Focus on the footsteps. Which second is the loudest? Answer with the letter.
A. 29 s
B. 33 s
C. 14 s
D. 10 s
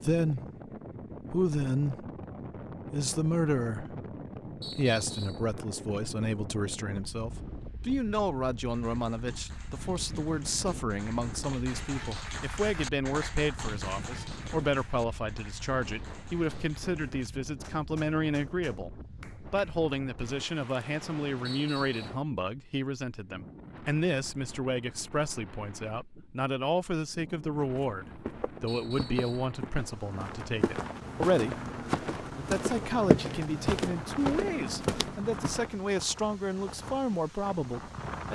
B.